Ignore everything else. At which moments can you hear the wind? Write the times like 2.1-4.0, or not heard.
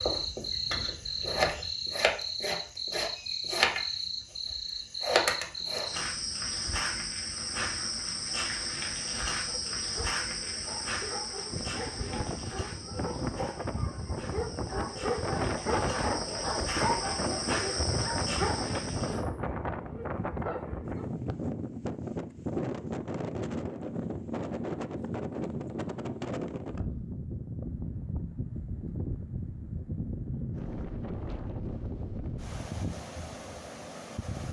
11.5-34.4.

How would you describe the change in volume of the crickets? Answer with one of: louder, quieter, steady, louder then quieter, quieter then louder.
quieter then louder.